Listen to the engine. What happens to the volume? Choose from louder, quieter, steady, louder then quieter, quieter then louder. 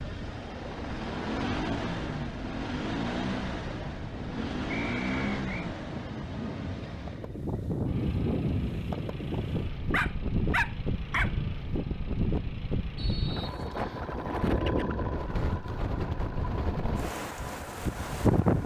quieter.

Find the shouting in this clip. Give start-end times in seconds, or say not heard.
not heard.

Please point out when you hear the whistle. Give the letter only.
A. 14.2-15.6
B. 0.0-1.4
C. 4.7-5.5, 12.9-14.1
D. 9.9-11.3
C.